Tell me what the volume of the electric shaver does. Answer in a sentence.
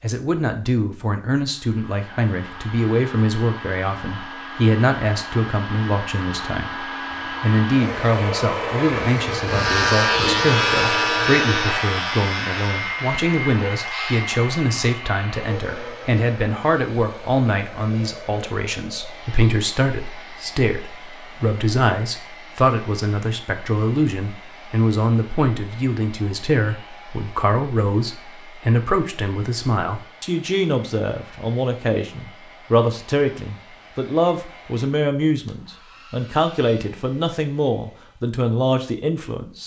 The loudness of the electric shaver goes down.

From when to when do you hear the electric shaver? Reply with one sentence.
You can hear the electric shaver from 9.4 to 14.3 s.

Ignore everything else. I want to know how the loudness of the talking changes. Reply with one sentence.
The volume of the talking stays about the same.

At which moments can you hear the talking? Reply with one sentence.
You can hear the talking from 0.0 to 39.6 s.